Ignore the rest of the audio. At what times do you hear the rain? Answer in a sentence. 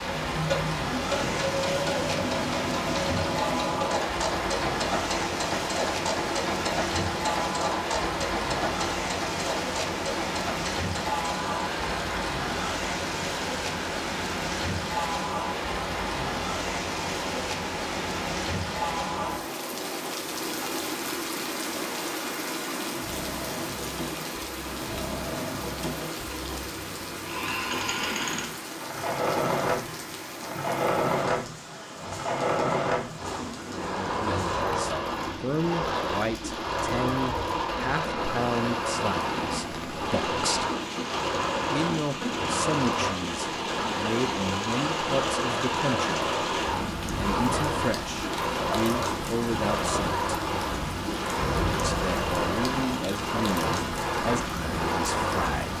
The rain can be heard from 0.0 to 55.7 s.